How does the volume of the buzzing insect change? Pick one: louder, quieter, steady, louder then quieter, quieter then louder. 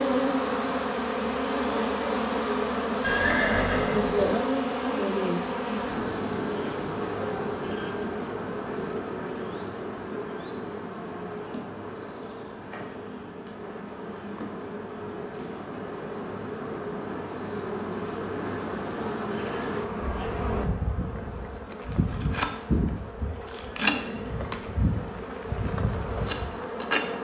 quieter then louder.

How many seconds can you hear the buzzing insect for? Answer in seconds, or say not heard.
27 s.